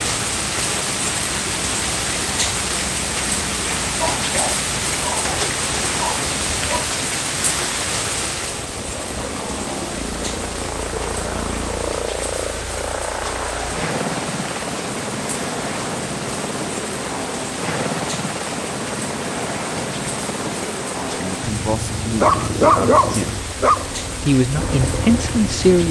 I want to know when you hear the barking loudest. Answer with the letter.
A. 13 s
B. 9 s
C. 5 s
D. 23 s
D.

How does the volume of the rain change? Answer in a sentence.
The volume of the rain goes down.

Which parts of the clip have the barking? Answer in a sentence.
The barking can be heard from 4.0 to 6.8 s and from 22.2 to 23.9 s.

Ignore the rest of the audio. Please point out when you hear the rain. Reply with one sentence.
You can hear the rain from 0.0 to 25.8 s.